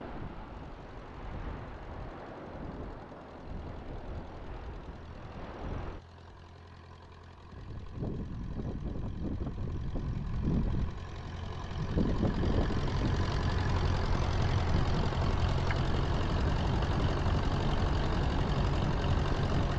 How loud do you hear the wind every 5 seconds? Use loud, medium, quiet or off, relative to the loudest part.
medium, medium, loud, loud.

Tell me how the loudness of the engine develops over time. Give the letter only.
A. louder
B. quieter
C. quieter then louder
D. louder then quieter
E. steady
A.